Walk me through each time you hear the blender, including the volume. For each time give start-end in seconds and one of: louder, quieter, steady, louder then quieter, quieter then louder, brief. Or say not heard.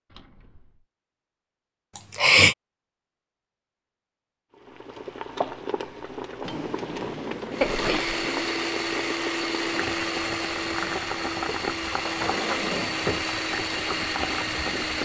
7.5-14.9 steady.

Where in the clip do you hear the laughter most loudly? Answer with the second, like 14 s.
2 s.